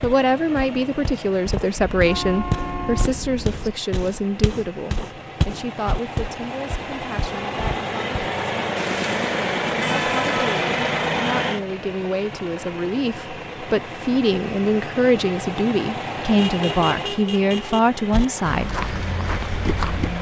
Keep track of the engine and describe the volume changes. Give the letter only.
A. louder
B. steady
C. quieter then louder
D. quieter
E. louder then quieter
E.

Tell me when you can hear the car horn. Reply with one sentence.
The car horn can be heard from 1.8 to 3.7 s, from 8.8 to 10.5 s and from 16.3 to 17.8 s.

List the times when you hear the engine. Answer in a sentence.
You can hear the engine from 0.0 to 20.1 s.